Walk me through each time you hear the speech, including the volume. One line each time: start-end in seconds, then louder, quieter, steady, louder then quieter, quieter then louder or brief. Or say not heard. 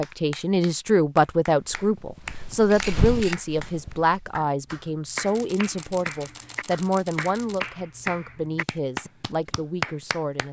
0.0-10.4 quieter.